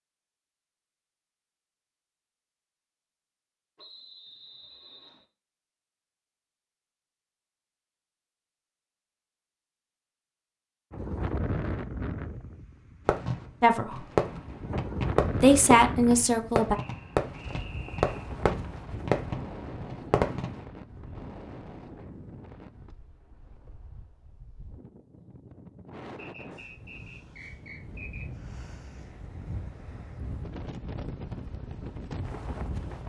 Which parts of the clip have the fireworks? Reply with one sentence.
You can hear the fireworks from 13.1 to 20.6 s.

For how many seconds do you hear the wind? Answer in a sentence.
The wind can be heard for 22 seconds in total.